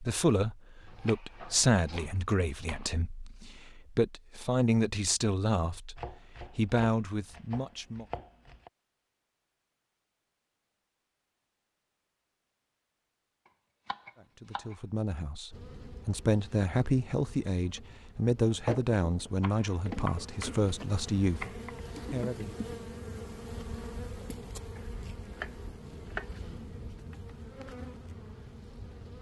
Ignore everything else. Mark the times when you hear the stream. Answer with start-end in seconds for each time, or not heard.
not heard.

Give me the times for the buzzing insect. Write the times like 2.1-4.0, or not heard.
15.5-29.1.